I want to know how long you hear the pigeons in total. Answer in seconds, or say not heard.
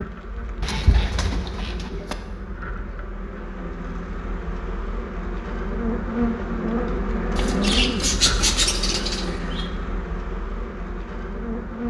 4 s.